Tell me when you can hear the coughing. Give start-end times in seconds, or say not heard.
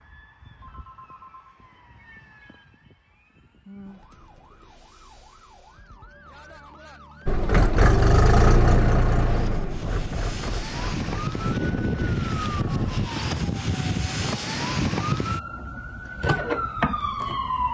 not heard.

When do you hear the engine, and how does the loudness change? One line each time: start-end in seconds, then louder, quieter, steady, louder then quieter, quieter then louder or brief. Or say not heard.
7.2-13.1 quieter.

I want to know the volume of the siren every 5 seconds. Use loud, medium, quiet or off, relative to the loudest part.
quiet, quiet, loud, loud.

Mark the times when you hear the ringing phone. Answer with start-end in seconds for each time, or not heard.
0.6-1.6.